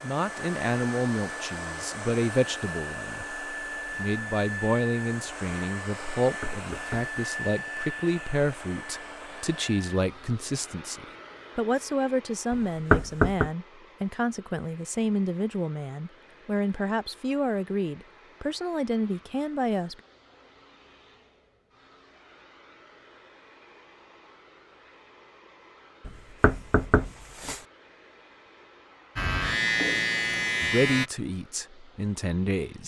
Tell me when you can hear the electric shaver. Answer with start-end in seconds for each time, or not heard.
29.1-31.1.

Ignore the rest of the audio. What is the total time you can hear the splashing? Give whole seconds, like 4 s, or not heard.
not heard.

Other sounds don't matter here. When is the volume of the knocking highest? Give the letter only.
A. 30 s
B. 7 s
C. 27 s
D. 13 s
D.